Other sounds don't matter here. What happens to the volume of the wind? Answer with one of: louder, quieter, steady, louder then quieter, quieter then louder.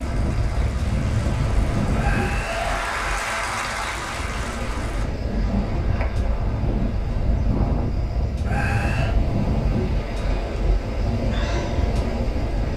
quieter then louder.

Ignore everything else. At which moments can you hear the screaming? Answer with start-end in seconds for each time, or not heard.
1.9-3.2, 8.4-9.2.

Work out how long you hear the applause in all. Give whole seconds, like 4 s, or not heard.
5 s.